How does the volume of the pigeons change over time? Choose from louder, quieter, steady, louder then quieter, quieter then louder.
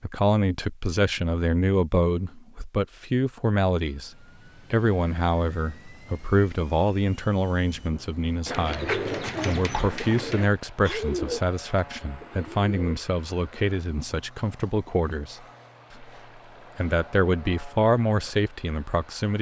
quieter.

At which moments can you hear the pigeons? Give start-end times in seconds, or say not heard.
7.9-13.1.